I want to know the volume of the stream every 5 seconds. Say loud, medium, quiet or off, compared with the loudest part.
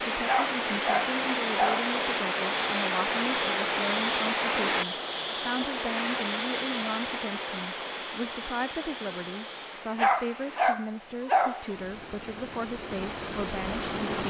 loud, medium, medium.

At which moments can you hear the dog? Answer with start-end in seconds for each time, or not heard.
0.2-1.9, 9.9-11.7.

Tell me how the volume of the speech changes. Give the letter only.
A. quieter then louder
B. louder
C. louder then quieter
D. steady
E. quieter
D.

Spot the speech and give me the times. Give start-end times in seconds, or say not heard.
0.0-14.2.